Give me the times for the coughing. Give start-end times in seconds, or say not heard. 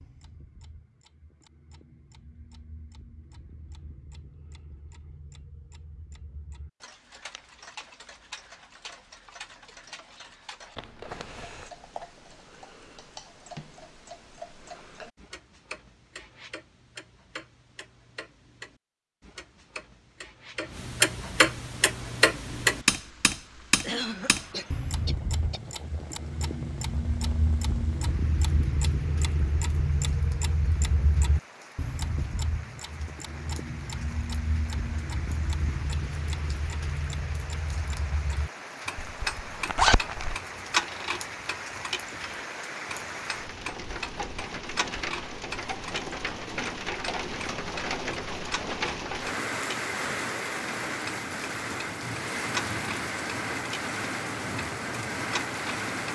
23.8-25.6.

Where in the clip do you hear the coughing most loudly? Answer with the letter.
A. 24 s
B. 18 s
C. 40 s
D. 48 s
A.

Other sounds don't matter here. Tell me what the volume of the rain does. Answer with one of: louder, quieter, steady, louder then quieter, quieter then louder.
louder.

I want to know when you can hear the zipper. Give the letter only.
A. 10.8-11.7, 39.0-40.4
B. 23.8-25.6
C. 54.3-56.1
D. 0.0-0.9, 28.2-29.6
A.